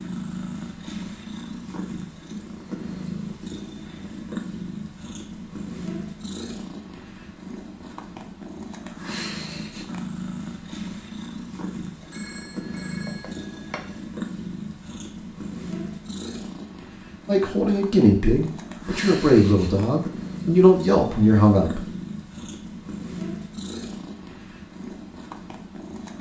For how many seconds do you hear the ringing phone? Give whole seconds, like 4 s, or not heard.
2 s.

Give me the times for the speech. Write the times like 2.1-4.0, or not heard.
17.2-21.9.